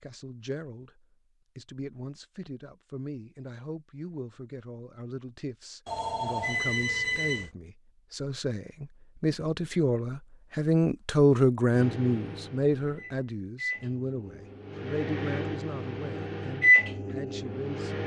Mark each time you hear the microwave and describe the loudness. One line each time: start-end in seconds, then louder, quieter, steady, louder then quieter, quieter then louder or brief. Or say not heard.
11.7-18.0 louder.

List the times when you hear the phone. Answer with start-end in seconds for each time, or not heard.
5.8-7.5.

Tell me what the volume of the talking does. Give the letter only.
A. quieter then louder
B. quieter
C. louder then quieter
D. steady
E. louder
C.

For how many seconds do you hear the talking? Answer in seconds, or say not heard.
18 s.